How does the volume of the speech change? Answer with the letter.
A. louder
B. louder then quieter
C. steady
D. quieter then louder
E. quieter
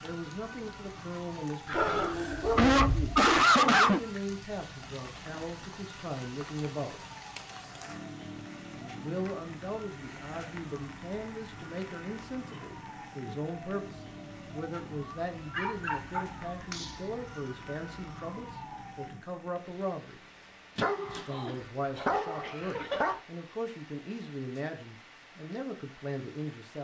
C.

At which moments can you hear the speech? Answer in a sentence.
The speech can be heard from 0.0 to 7.0 s, from 8.7 to 20.2 s and from 21.1 to 26.7 s.